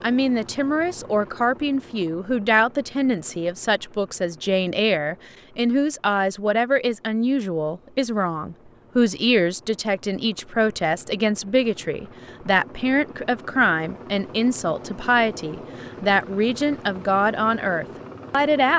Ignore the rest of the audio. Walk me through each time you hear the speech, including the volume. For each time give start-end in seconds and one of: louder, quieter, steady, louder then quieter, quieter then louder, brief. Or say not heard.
0.0-18.7 steady.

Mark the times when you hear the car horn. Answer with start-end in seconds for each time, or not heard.
not heard.